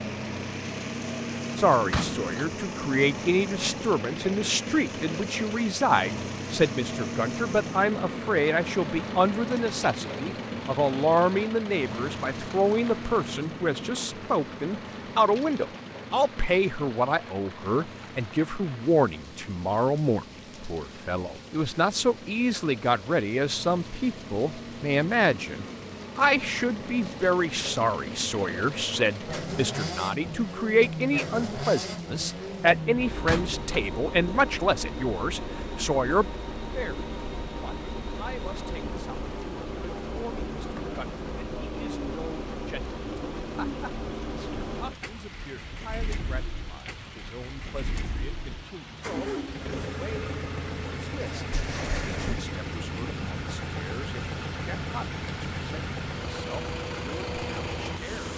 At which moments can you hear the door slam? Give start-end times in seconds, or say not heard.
1.9-2.5, 33.2-33.9, 51.5-52.5.